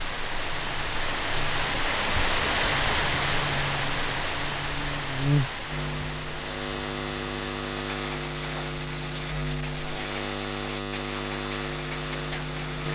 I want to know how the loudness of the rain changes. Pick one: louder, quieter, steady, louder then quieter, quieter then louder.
quieter.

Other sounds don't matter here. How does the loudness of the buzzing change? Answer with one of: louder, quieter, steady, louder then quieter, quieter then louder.
louder.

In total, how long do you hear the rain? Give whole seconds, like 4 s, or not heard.
13 s.